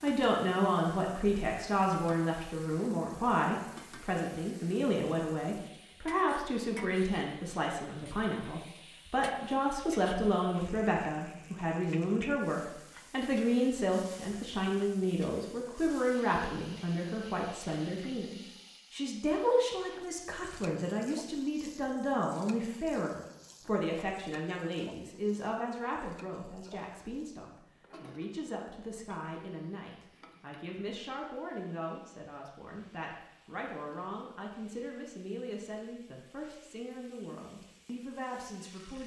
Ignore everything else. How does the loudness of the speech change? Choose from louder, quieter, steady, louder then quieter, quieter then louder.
quieter.